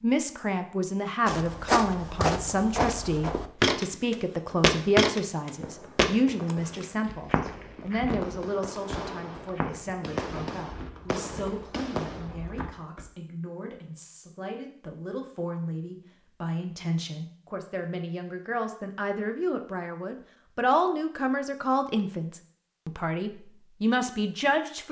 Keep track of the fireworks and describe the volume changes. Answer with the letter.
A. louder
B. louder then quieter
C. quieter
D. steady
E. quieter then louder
A.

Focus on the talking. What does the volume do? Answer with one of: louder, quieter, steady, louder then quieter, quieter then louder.
quieter then louder.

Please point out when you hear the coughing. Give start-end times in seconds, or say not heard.
not heard.